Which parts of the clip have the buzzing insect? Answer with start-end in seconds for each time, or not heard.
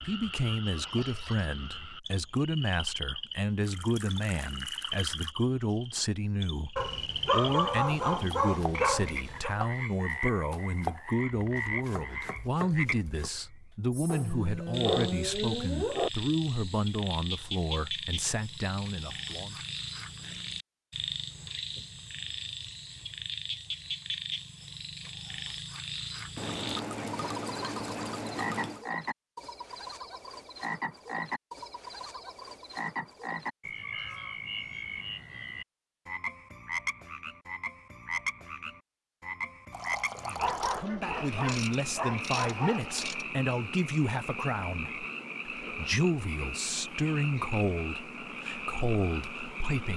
not heard.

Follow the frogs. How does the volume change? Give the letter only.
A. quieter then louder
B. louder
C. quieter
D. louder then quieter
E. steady
E.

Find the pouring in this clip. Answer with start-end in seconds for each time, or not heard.
3.6-5.3, 26.4-28.9, 39.7-40.9.